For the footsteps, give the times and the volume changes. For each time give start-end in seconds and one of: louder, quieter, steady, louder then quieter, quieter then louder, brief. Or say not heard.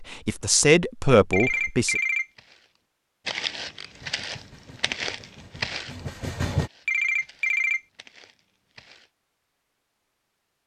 2.3-9.1 quieter.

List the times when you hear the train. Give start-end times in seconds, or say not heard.
3.9-6.7.